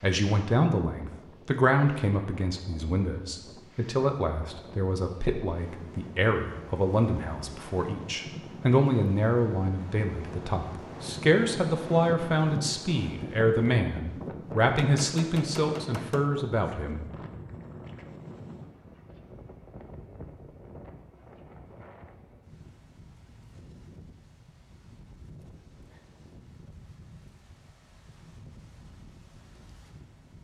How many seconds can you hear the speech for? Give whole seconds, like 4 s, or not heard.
17 s.